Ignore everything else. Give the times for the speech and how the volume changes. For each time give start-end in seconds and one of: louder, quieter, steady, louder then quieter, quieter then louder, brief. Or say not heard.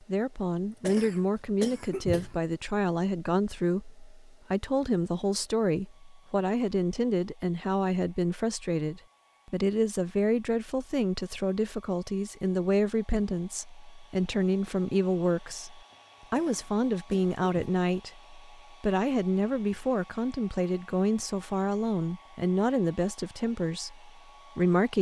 0.0-24.9 steady.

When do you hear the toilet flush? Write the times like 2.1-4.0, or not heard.
not heard.